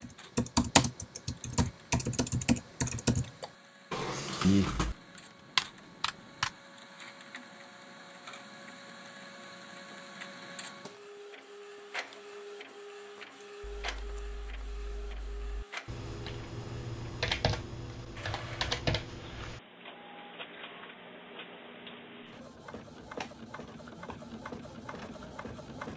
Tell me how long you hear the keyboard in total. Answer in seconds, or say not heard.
12 s.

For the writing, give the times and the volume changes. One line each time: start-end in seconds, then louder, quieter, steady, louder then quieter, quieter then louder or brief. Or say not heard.
not heard.